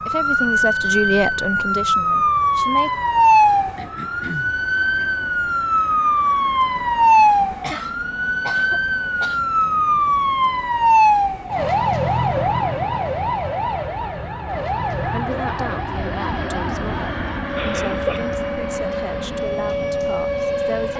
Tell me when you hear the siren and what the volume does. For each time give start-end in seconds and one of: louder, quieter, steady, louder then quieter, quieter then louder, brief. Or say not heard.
0.0-20.9 quieter.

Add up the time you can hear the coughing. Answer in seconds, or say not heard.
4 s.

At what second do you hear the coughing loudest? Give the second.
18 s.